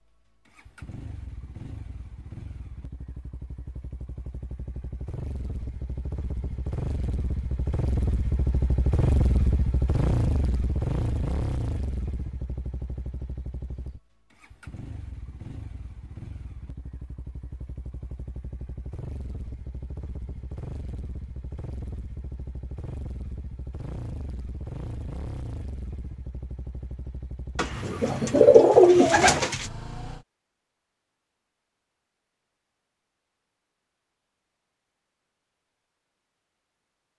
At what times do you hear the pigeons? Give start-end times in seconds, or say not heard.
27.6-29.6.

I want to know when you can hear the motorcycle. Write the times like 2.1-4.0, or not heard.
0.1-30.2.